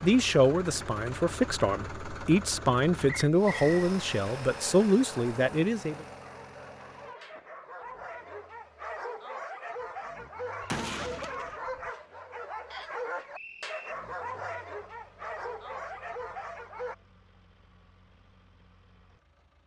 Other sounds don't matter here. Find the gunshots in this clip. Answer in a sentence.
The gunshots can be heard from 10.6 to 11.9 s.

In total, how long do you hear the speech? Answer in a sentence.
You can hear the speech for 6 seconds altogether.